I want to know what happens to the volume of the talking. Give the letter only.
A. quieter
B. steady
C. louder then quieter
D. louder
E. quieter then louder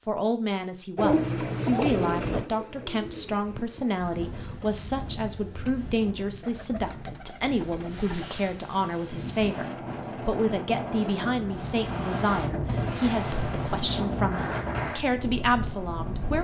B.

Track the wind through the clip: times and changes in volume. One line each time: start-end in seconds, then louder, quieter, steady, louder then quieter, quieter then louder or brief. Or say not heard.
3.9-16.3 louder.